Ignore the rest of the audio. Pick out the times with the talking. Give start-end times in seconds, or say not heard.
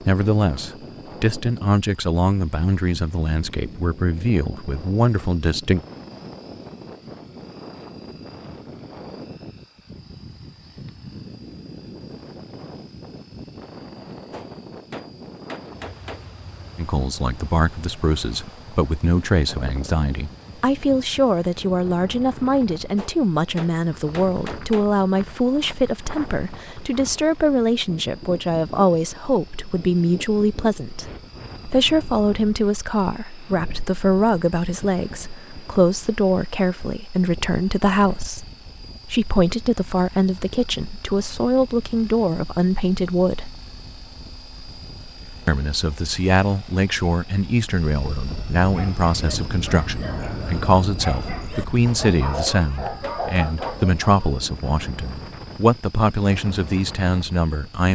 0.0-5.8, 16.8-38.5, 39.0-43.5, 45.5-57.9.